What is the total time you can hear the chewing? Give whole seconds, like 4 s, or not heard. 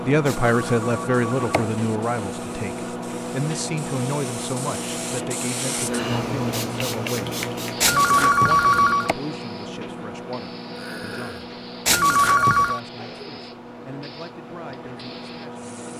not heard.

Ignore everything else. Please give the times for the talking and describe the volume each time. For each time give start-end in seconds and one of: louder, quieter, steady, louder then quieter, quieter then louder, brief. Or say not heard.
0.0-15.7 quieter.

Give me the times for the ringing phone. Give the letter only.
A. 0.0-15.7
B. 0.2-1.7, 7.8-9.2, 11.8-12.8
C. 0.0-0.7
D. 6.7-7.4
B.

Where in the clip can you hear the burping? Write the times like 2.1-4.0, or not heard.
10.8-11.4.